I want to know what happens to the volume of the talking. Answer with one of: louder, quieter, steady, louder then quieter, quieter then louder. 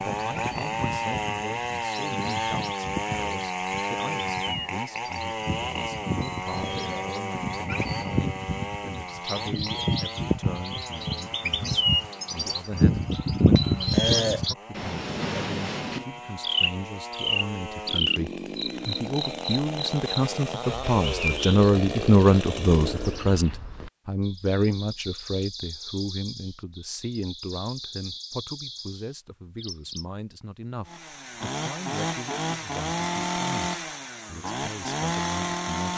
louder then quieter.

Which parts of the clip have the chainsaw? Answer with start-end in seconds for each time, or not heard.
0.0-23.4, 30.9-35.9.